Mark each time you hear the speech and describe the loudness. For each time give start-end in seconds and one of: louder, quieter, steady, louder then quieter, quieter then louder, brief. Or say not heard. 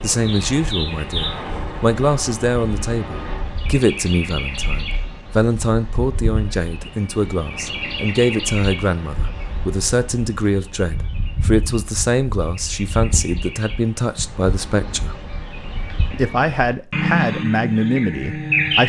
0.0-15.2 steady
16.1-18.8 brief.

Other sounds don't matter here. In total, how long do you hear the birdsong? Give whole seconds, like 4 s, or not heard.
19 s.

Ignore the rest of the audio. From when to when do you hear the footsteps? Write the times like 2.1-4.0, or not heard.
not heard.